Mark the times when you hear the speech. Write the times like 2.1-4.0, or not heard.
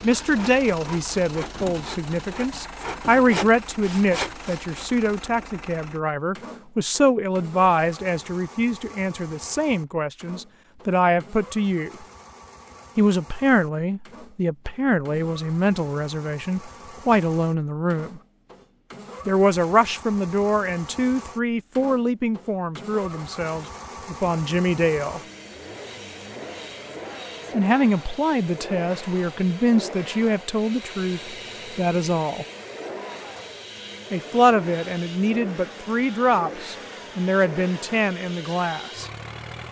0.0-11.9, 12.9-18.2, 19.2-25.2, 27.5-32.5, 34.1-39.1.